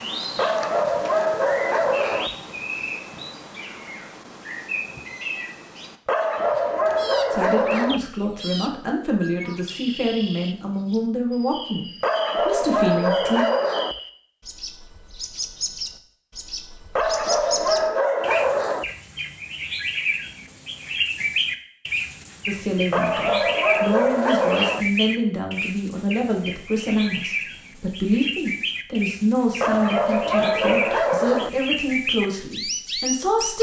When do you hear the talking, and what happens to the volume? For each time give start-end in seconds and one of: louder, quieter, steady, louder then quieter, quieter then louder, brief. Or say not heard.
7.3-13.4 steady
22.4-33.5 steady.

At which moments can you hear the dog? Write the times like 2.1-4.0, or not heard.
0.3-2.4, 6.0-8.1, 12.0-14.0, 16.9-18.9, 22.9-24.9, 29.6-31.6.